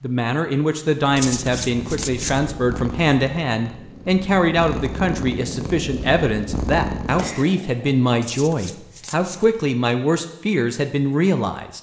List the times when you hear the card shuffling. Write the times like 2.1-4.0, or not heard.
1.1-2.5, 8.2-9.6.